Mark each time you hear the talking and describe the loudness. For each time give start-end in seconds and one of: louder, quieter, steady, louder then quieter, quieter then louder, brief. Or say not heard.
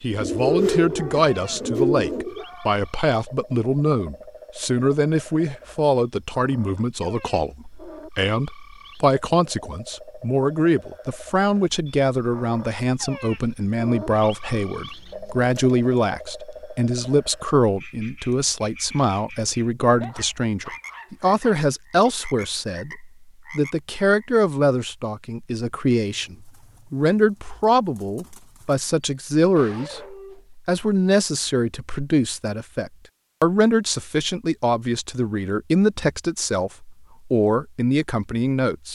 0.0-38.8 steady.